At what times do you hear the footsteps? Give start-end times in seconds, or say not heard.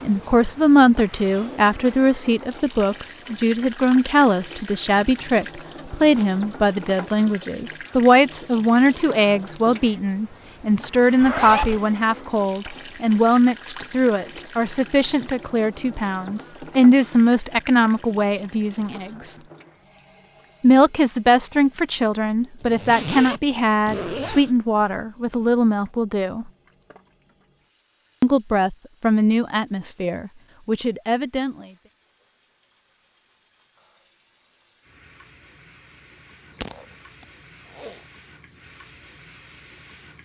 not heard.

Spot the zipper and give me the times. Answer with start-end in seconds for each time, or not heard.
11.2-11.8, 22.6-24.5, 36.5-38.0.